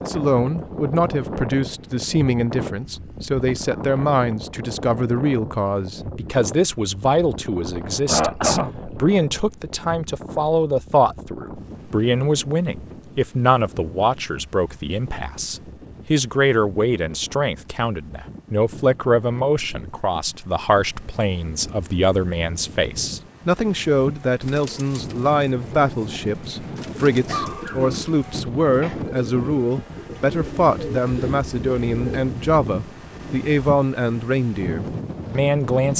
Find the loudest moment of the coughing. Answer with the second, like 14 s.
8 s.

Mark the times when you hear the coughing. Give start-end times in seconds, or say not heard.
7.9-8.9, 27.2-28.9.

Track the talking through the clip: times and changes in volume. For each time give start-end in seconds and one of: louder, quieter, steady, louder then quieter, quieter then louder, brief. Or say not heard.
0.0-35.9 steady.